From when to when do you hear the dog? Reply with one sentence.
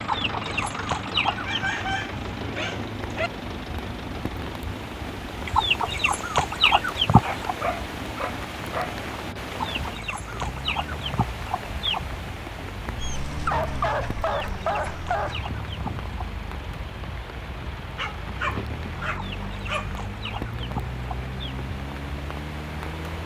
You can hear the dog from 1.3 to 3.3 s, from 7.2 to 8.9 s, from 12.9 to 15.4 s and from 17.9 to 19.9 s.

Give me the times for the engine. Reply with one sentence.
The engine can be heard from 0.0 to 23.2 s.